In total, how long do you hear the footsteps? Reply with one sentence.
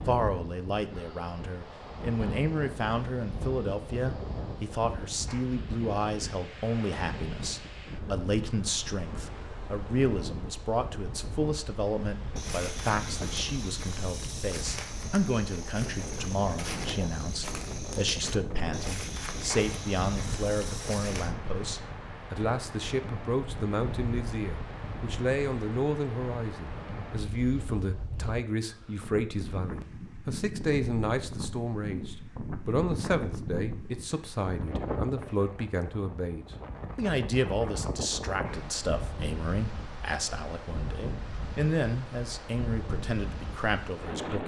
You can hear the footsteps for 9 seconds altogether.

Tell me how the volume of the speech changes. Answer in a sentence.
The volume of the speech stays about the same.